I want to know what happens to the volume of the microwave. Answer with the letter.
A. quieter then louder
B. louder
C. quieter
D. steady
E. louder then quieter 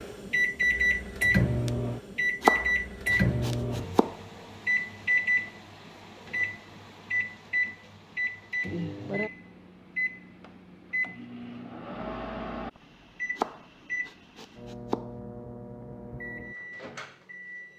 C.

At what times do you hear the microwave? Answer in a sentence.
The microwave can be heard from 0.0 to 17.7 s.